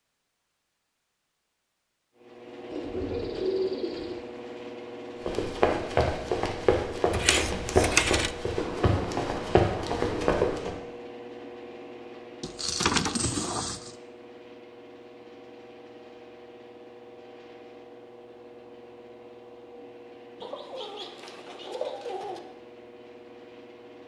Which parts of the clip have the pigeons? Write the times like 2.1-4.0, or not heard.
2.7-4.2, 8.6-10.6, 20.4-22.4.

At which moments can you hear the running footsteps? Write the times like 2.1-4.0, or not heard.
5.2-10.8.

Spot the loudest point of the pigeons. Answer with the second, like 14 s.
4 s.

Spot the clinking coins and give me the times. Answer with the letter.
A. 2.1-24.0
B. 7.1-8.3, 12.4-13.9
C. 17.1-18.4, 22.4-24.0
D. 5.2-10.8
B.